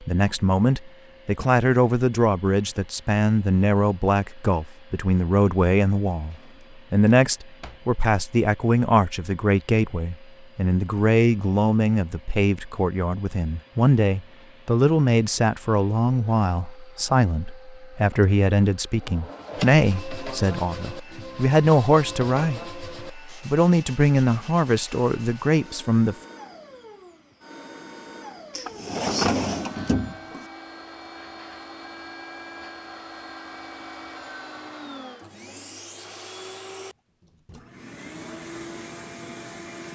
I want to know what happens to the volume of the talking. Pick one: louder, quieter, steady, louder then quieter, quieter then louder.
steady.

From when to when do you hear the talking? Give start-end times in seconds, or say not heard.
0.0-26.1.